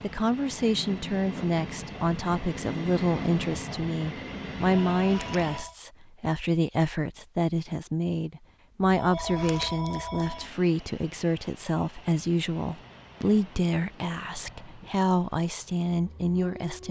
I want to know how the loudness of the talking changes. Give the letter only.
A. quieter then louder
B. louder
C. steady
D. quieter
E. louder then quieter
C.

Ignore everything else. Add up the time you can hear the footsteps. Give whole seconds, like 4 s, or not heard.
not heard.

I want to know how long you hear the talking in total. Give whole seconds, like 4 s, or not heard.
17 s.